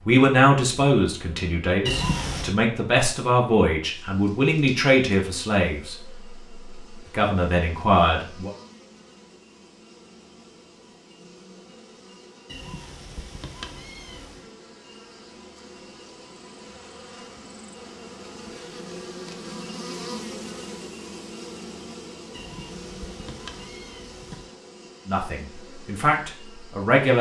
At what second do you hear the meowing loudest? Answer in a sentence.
The loudest moment of the meowing is at 2 seconds.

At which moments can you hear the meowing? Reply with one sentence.
The meowing can be heard from 1.9 to 2.5 s, from 12.4 to 14.4 s and from 22.3 to 24.5 s.